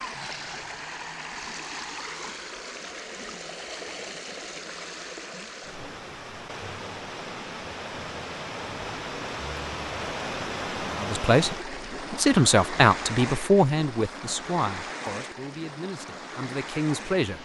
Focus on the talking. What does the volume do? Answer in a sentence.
The loudness of the talking goes down, then up.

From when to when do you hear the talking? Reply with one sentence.
You can hear the talking from 10.9 to 17.4 s.